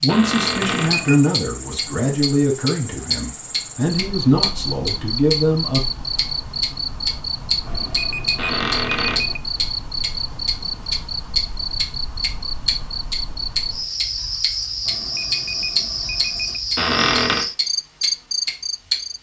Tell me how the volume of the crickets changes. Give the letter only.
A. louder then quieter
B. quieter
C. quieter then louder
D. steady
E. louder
E.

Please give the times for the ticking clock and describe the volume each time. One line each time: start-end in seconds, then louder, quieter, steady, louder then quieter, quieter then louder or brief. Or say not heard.
0.0-18.9 steady.